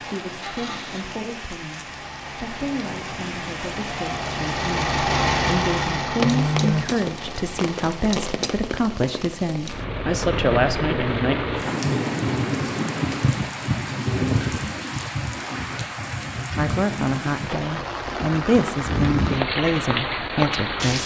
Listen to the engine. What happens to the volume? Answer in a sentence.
The volume of the engine goes up, then down.